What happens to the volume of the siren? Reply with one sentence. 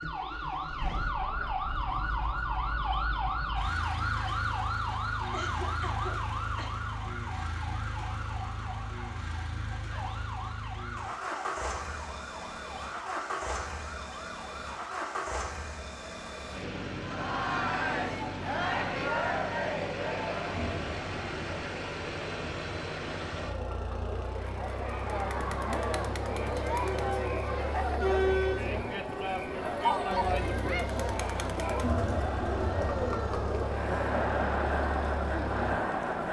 The loudness of the siren goes down.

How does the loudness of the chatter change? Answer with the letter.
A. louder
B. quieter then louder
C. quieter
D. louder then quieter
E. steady
B.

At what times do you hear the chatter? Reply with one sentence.
The chatter can be heard from 17.0 to 36.2 s.